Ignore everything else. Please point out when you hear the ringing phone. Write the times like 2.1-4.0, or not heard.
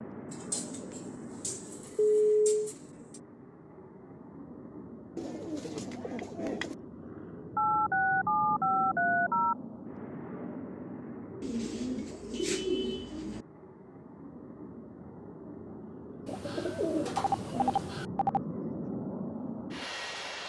1.9-2.6, 7.5-9.6, 17.1-18.4.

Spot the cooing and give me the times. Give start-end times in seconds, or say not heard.
0.3-3.2, 5.2-6.8, 11.4-13.4, 16.2-18.1.